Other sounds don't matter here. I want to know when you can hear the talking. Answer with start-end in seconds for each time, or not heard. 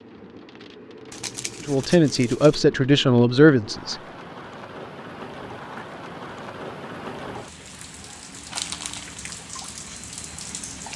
1.6-4.0.